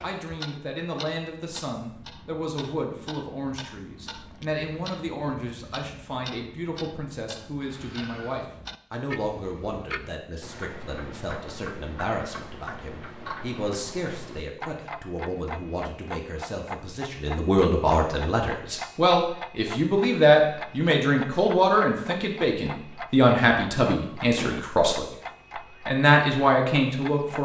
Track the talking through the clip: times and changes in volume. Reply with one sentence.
You can hear the talking from 0.0 to 25.1 s, getting louder; and briefly from 25.9 to 27.4 s.